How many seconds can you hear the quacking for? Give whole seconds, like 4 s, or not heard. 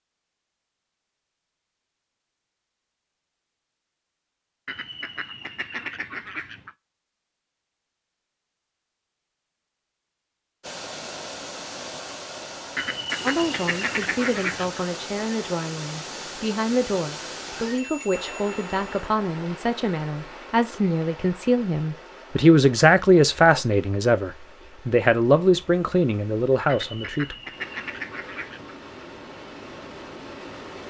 6 s.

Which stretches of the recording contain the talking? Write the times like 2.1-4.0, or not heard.
13.2-27.4.